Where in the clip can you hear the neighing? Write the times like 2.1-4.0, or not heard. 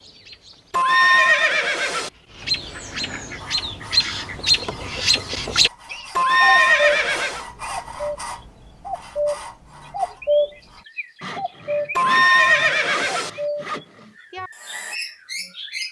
0.7-2.1, 6.2-7.5, 11.9-13.3.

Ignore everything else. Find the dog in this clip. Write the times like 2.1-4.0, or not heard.
not heard.